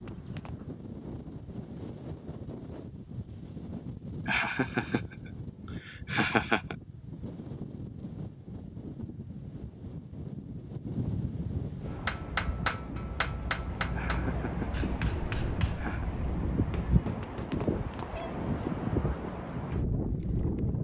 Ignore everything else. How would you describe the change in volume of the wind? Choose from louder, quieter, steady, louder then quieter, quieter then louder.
louder.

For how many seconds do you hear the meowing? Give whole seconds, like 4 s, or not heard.
2 s.